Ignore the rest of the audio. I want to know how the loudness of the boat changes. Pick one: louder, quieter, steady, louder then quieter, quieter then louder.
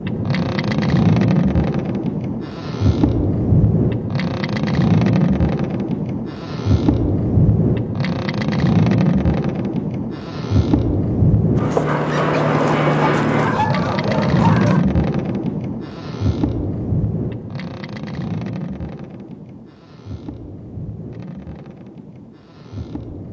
quieter.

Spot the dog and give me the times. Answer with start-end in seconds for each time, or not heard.
11.9-14.8.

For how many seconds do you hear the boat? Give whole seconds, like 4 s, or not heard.
23 s.